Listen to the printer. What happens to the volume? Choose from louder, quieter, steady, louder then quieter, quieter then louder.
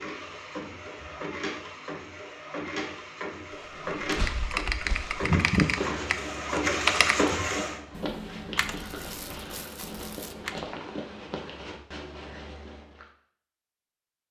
louder.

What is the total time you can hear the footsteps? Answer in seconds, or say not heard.
9 s.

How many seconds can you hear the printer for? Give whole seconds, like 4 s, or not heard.
8 s.